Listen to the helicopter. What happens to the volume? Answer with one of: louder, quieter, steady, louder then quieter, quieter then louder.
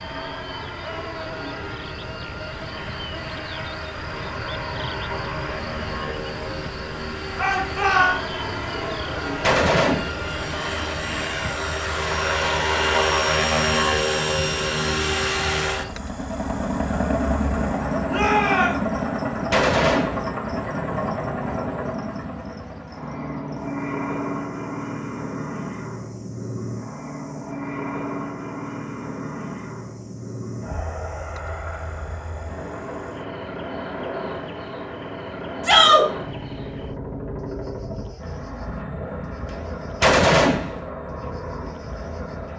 louder then quieter.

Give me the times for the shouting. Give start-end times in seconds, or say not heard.
7.3-8.2, 18.1-18.9, 35.6-36.0.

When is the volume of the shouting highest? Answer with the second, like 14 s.
36 s.